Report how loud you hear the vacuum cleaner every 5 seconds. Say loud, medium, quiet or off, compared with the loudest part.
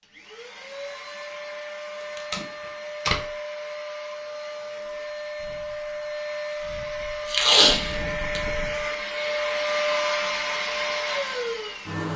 medium, loud, loud.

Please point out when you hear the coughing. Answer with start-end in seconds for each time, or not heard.
not heard.